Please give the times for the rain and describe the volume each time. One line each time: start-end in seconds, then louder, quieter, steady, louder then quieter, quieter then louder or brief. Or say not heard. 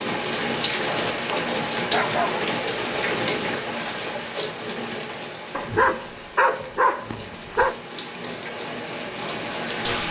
0.0-10.0 quieter then louder.